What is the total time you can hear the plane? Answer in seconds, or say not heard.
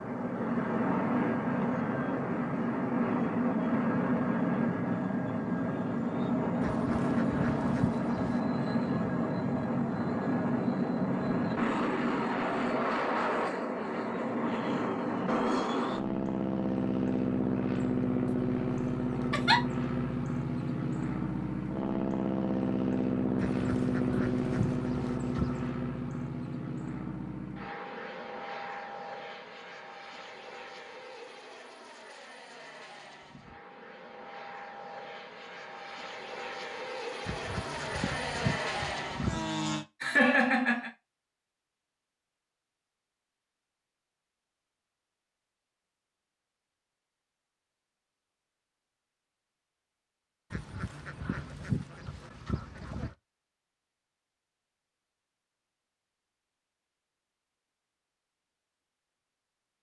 40 s.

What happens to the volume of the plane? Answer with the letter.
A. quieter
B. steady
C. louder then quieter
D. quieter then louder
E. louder
A.